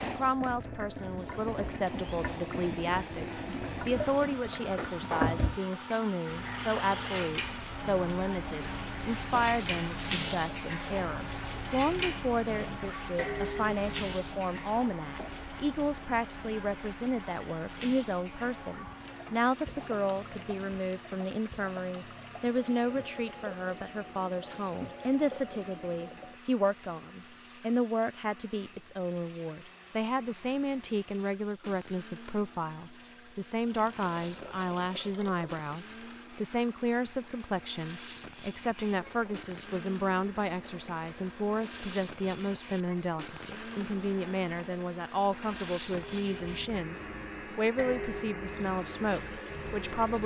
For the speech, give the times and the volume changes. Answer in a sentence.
You can hear the speech from 0.0 to 50.2 s, at a steady volume.